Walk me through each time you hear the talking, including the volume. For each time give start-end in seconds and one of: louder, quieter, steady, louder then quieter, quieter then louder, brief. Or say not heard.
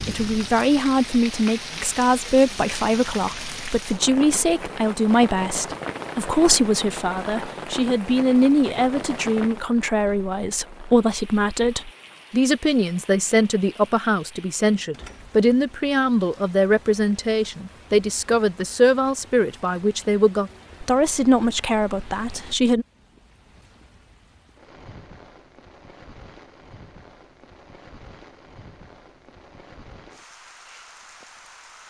0.0-22.9 steady.